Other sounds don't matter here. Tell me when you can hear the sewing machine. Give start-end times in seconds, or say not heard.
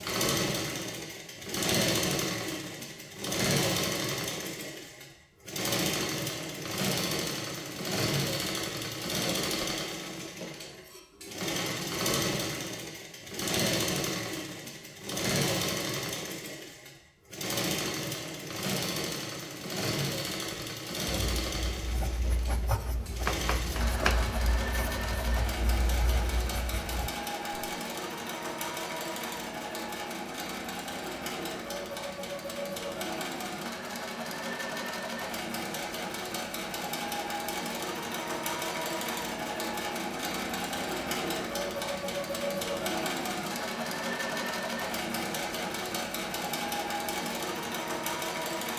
0.0-48.7.